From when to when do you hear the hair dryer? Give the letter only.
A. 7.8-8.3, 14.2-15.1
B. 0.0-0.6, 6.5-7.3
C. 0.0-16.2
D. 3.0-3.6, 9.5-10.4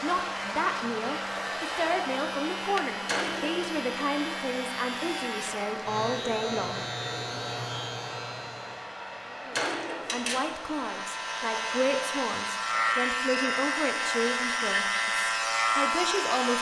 C.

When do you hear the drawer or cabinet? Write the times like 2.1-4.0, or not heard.
3.0-3.6, 9.5-10.4.